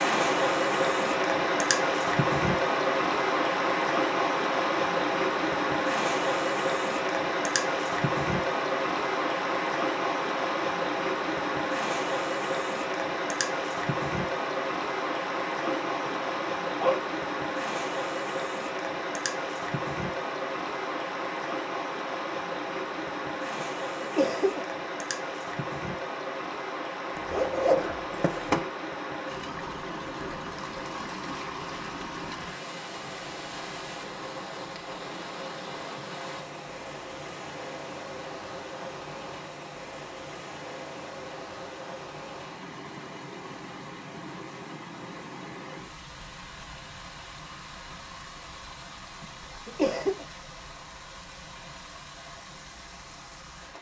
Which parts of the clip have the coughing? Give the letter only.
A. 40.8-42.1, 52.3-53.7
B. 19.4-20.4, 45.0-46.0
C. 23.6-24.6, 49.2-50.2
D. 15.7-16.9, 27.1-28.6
C.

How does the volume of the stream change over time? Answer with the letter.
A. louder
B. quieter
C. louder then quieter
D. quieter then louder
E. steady
B.